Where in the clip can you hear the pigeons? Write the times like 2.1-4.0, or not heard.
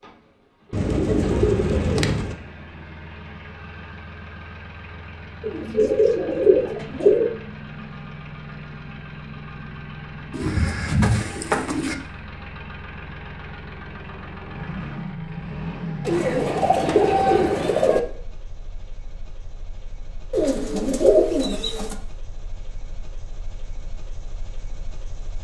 0.7-2.4, 5.4-7.3, 10.3-11.9, 16.1-18.0, 20.3-21.9.